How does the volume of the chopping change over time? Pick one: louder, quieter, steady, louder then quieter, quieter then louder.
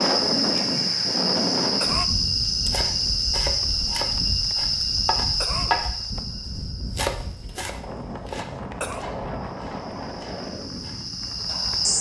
louder then quieter.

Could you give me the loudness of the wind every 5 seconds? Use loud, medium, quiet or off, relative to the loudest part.
loud, medium, medium.